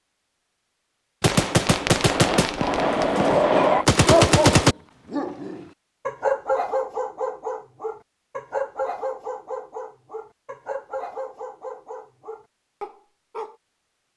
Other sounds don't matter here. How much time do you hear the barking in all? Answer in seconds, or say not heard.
11 s.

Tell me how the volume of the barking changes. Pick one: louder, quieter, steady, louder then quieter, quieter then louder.
quieter.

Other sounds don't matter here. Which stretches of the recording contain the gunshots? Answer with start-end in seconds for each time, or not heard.
1.2-4.8.